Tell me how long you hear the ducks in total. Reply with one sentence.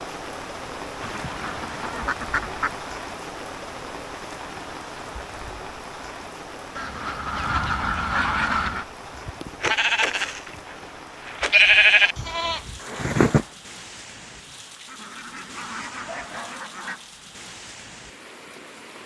The ducks can be heard for 6 seconds in total.